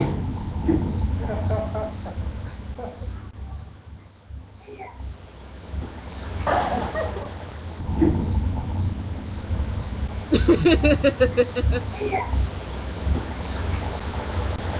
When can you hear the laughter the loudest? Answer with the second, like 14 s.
11 s.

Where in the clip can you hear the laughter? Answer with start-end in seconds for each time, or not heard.
1.1-3.1, 6.5-7.3, 10.3-11.8.